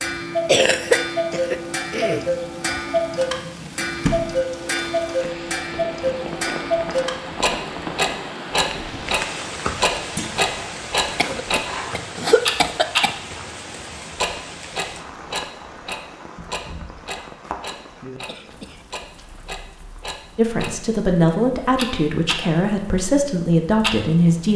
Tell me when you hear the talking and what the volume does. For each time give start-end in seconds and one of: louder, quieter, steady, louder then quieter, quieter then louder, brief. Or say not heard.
20.4-24.5 steady.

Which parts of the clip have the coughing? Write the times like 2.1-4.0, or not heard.
0.5-2.2, 11.2-13.2, 18.2-18.9.